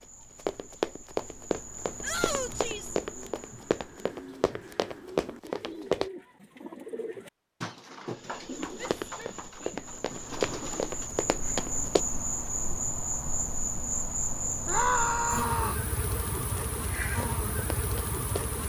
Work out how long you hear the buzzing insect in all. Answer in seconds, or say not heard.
14 s.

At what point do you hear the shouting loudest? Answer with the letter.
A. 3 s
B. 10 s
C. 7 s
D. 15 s
D.